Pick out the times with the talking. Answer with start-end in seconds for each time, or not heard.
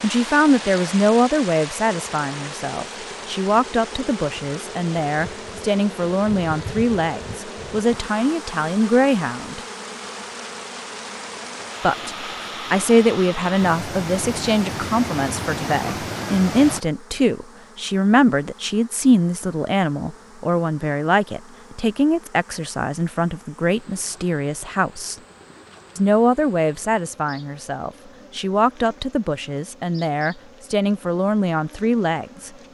0.0-9.6, 11.8-25.1, 25.9-32.5.